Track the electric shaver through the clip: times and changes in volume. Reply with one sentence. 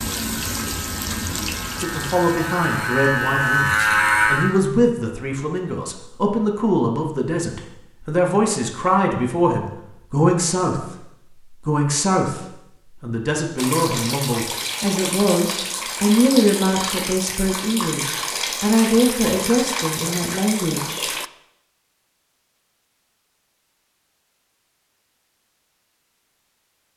You can hear the electric shaver from 0.0 to 4.5 s, getting louder.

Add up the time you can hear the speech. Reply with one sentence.
The speech can be heard for 19 seconds in total.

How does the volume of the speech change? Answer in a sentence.
The loudness of the speech stays about the same.